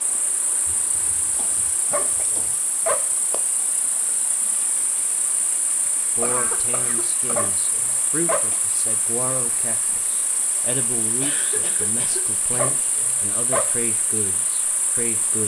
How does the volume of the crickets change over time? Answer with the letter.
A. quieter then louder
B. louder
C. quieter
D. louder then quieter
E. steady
E.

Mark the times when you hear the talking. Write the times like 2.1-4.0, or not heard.
6.2-15.4.